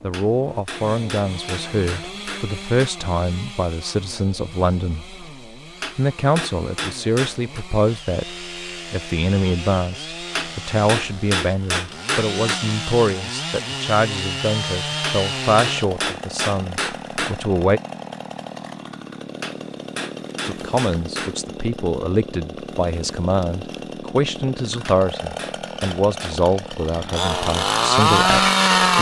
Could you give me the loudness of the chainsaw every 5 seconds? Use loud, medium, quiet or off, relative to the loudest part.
quiet, quiet, medium, medium, quiet, loud.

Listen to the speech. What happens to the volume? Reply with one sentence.
The volume of the speech stays about the same.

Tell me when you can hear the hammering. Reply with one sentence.
The hammering can be heard from 0.1 to 2.9 s, from 5.8 to 7.7 s, from 10.3 to 12.6 s, from 15.0 to 17.4 s, from 19.4 to 21.4 s and from 24.9 to 26.4 s.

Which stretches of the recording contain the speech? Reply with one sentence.
The speech can be heard from 0.0 to 5.2 s, from 6.0 to 17.8 s and from 20.4 to 28.9 s.